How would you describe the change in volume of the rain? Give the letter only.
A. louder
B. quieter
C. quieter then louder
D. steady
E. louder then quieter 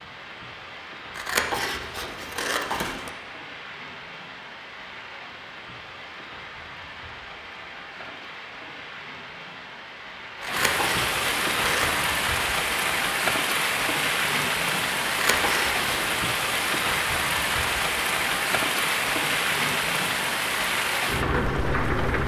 A.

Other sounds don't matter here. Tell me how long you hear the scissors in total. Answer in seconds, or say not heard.
5 s.